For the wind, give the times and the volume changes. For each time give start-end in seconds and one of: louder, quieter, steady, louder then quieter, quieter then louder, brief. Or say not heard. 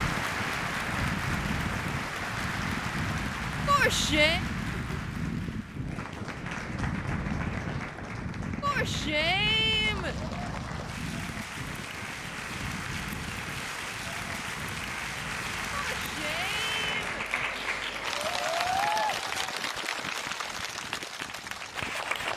0.0-22.3 quieter.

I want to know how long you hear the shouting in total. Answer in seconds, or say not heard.
4 s.